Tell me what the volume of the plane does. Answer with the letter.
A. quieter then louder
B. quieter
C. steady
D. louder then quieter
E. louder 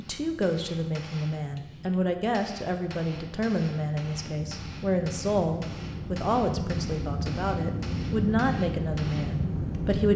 E.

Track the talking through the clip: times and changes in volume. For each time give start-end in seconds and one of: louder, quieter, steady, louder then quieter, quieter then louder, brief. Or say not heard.
0.0-10.1 steady.